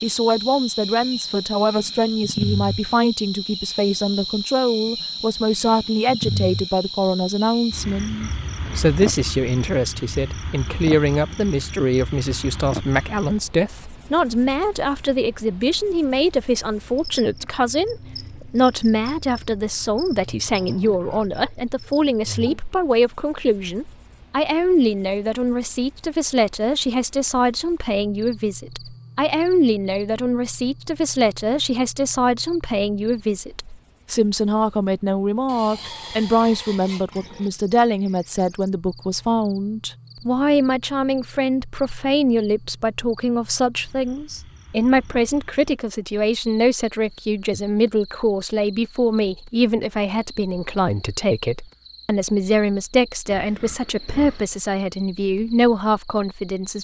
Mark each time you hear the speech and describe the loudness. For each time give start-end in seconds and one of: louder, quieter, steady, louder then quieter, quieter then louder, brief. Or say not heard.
0.0-56.7 steady.